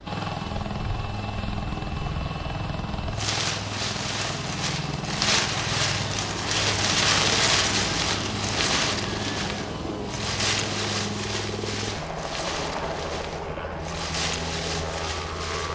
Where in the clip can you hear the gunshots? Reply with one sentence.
The gunshots can't be heard in this clip.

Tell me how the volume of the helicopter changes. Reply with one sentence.
The loudness of the helicopter stays about the same.